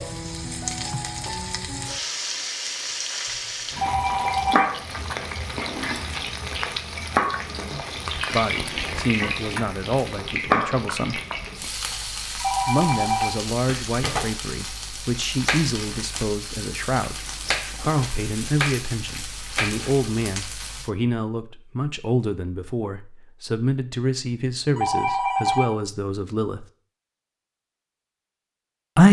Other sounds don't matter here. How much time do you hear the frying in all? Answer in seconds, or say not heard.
21 s.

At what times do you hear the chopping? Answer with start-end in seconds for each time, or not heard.
not heard.